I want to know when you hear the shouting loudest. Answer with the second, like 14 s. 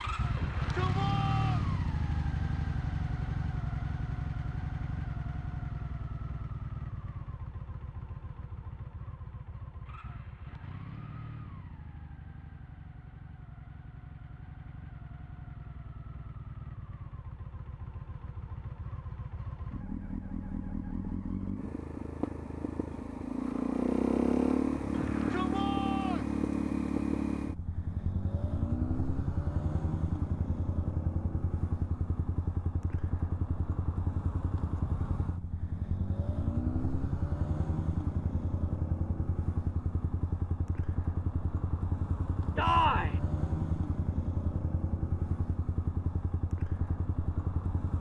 43 s.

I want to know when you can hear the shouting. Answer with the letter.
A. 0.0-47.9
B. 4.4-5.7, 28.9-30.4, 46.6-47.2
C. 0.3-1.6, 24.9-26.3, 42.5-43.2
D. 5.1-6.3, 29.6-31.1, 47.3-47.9
C.